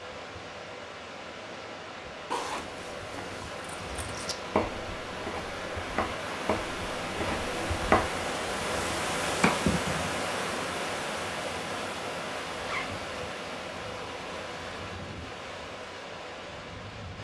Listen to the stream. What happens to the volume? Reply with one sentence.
The loudness of the stream goes up, then down.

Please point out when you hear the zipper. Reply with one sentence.
The zipper can be heard from 2.3 to 4.2 s and from 12.6 to 13.0 s.